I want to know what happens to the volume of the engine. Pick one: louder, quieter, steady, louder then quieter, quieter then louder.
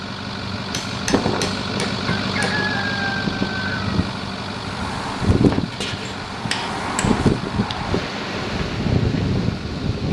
quieter.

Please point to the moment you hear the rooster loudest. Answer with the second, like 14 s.
3 s.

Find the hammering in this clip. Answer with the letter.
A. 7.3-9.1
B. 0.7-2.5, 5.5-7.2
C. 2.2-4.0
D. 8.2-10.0
B.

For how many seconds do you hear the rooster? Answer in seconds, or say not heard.
2 s.